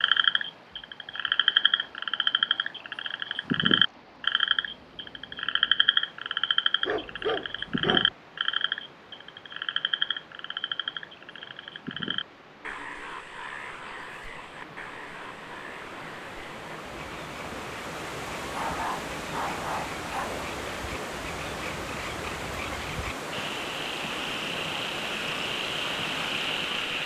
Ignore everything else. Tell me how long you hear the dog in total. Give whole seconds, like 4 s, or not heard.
3 s.